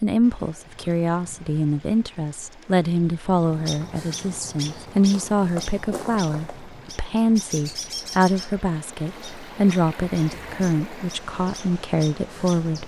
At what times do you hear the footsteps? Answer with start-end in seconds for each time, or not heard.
not heard.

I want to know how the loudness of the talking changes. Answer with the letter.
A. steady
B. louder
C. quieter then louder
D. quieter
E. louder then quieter
A.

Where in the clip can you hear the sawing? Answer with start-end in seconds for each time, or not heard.
not heard.